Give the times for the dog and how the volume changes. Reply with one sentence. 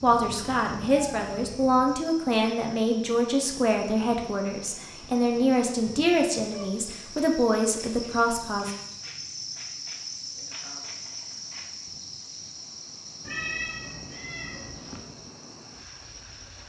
You can't hear the dog here.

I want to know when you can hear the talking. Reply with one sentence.
You can hear the talking from 0.0 to 8.8 s.